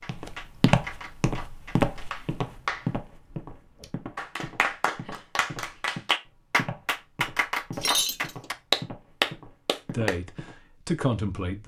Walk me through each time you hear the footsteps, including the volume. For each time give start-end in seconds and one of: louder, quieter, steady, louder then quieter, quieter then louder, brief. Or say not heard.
0.0-10.7 quieter.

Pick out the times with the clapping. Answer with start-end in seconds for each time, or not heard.
0.0-10.2.